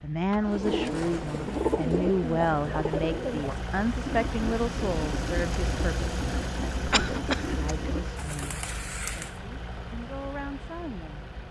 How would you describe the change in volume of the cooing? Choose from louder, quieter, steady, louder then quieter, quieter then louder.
quieter.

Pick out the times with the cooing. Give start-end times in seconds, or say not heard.
0.5-9.4.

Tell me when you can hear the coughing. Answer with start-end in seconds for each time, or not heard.
6.9-7.6.